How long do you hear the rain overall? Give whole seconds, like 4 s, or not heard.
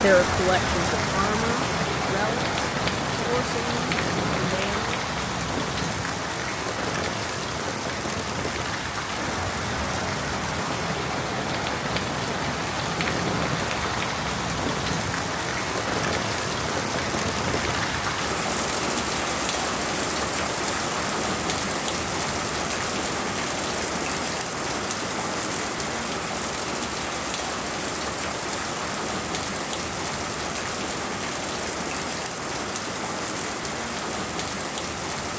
35 s.